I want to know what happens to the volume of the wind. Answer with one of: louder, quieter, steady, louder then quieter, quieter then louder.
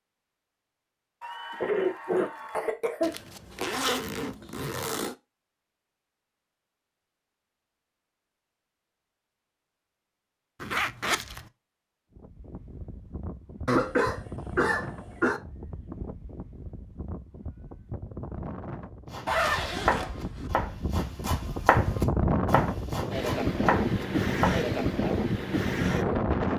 louder.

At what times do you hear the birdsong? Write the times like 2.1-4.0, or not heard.
not heard.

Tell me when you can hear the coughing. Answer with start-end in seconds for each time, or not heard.
1.2-3.1, 13.7-15.4.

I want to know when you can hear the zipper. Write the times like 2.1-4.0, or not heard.
3.0-5.2, 10.6-11.4, 19.2-20.5.